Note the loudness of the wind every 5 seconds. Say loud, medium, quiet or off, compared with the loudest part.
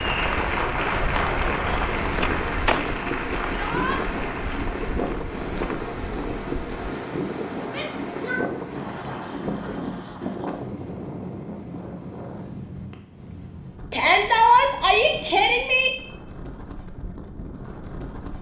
loud, loud, medium, medium.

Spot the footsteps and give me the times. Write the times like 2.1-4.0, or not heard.
0.0-7.0.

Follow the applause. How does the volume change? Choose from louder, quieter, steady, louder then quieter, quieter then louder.
quieter.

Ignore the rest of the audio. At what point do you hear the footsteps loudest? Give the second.
3 s.